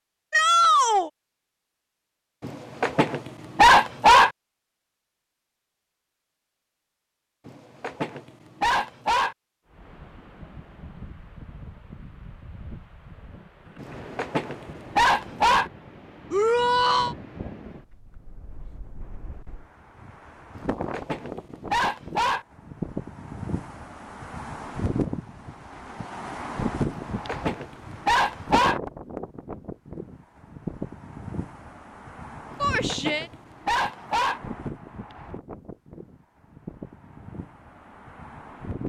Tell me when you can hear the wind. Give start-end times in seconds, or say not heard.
9.7-38.8.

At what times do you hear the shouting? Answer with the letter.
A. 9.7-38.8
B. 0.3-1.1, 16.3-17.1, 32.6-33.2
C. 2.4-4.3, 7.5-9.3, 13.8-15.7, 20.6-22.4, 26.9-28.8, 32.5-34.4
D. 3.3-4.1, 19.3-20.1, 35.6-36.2
B.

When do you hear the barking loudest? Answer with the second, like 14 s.
4 s.